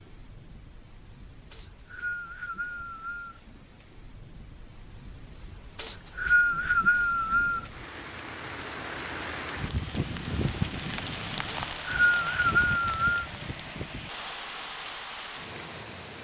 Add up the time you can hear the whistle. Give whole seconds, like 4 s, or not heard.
6 s.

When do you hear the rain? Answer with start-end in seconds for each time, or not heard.
0.0-16.1.